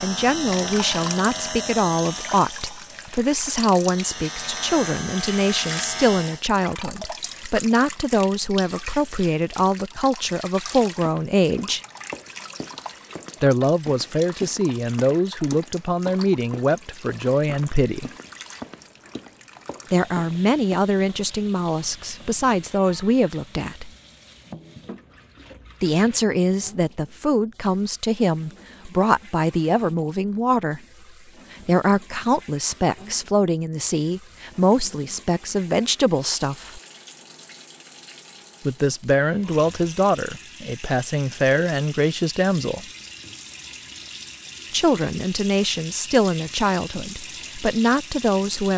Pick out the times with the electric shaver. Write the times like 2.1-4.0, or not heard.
0.0-6.5.